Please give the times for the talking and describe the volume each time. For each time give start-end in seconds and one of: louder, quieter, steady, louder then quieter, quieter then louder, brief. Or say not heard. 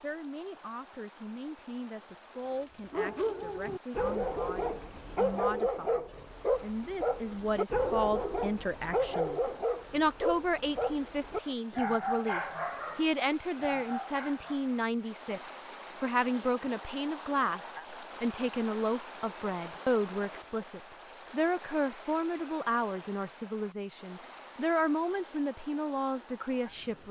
0.0-27.0 louder.